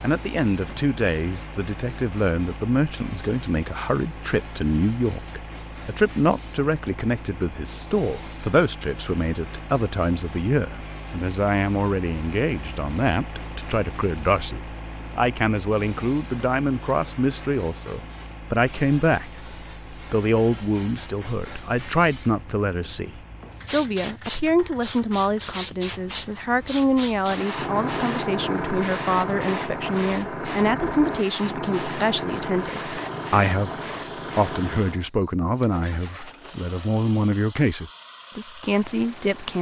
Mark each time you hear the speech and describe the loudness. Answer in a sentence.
You can hear the speech from 0.0 to 33.8 s, at a steady volume; and from 34.4 to 39.5 s, at a steady volume.